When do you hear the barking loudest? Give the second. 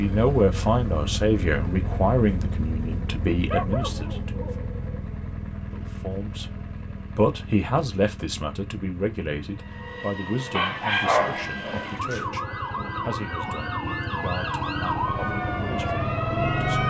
11 s.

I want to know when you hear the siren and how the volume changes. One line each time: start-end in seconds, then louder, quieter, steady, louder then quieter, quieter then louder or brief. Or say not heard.
9.5-16.8 louder.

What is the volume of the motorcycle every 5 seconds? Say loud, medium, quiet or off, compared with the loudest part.
loud, medium, medium, loud.